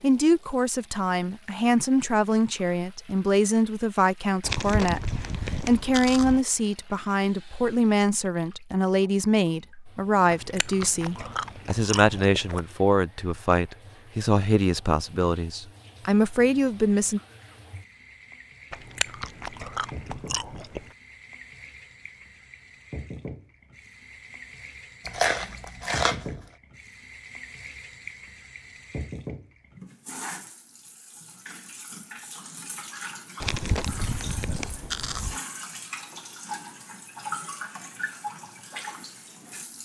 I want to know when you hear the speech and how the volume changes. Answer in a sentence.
You can hear the speech from 0.0 to 17.2 s, at a steady volume.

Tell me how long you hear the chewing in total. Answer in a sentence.
You can hear the chewing for 10 seconds altogether.